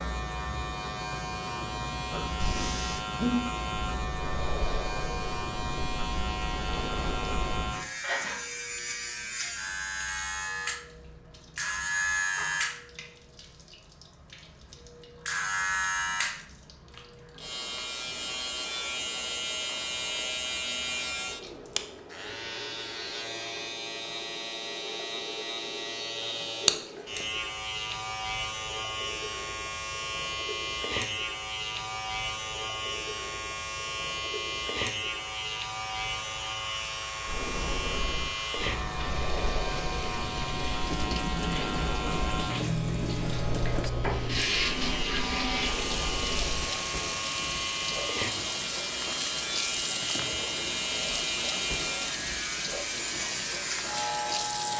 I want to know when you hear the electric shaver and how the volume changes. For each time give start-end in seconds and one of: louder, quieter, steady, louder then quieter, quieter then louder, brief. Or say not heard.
0.0-54.7 steady.